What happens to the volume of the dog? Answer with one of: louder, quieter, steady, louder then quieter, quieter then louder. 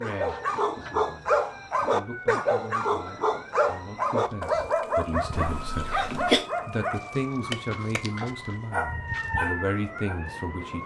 quieter.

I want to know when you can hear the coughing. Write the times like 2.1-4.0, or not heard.
5.3-6.5.